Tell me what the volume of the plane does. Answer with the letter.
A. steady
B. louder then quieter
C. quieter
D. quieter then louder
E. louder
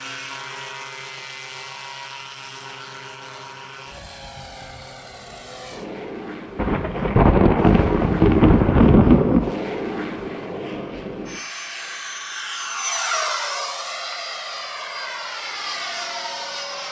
E.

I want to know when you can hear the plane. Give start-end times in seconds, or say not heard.
0.0-16.8.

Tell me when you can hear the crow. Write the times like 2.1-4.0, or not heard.
not heard.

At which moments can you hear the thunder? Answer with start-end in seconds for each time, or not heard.
6.5-9.6.